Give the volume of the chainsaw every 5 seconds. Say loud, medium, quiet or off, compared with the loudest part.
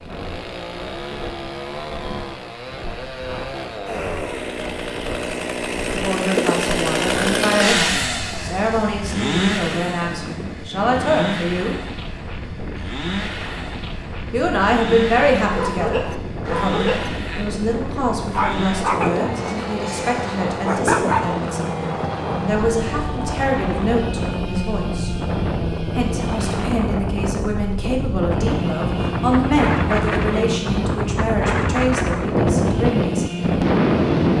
medium, loud, medium, medium, medium, medium, medium.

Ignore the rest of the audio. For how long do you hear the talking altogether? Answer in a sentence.
You can hear the talking for 24 seconds altogether.